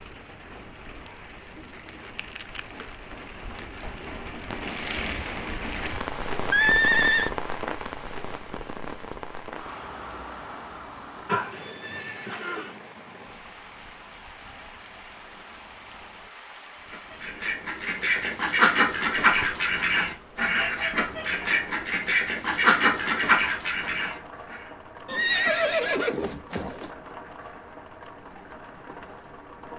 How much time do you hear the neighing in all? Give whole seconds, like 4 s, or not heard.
4 s.